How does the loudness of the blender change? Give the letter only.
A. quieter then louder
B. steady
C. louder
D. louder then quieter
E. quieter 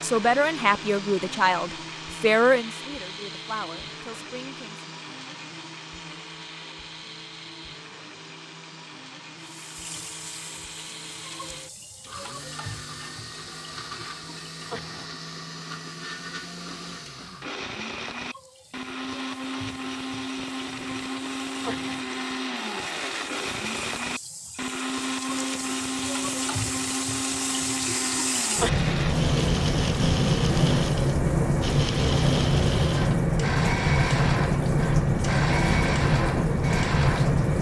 C.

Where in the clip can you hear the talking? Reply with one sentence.
The talking can be heard from 0.0 to 4.8 s.